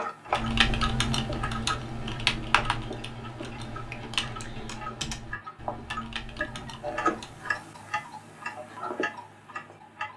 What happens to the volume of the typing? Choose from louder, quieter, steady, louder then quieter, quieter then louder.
quieter.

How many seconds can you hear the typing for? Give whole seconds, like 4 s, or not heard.
7 s.